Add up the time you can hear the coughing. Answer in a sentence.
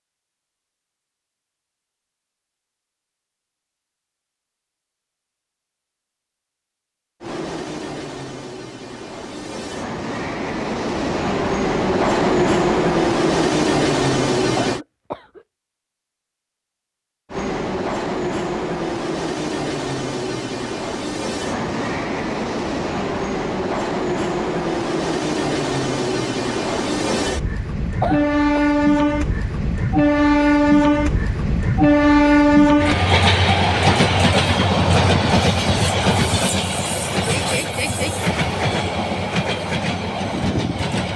You can hear the coughing for 2 seconds altogether.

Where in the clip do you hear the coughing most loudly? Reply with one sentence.
The volume of the coughing peaks at 28 seconds.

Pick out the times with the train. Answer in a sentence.
The train can be heard from 7.2 to 14.8 s and from 17.3 to 41.1 s.